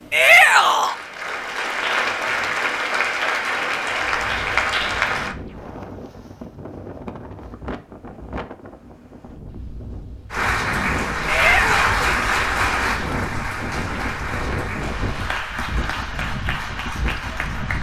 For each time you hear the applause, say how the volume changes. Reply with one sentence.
The applause can be heard from 0.0 to 5.3 s, getting louder; and from 10.3 to 17.7 s, getting quieter.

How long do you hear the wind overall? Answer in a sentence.
You can hear the wind for 14 seconds altogether.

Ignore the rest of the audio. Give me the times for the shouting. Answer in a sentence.
You can hear the shouting from 0.1 to 0.9 s and from 11.2 to 12.1 s.